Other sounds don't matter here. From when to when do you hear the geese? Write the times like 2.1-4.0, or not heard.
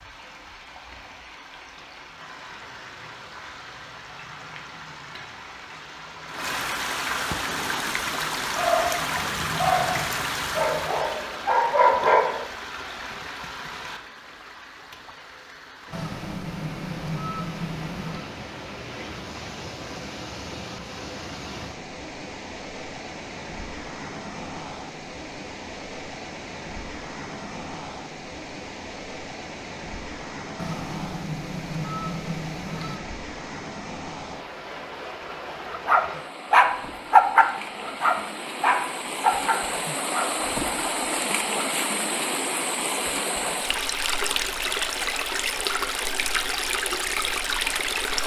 15.9-18.3, 30.6-33.0.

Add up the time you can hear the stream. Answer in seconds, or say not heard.
48 s.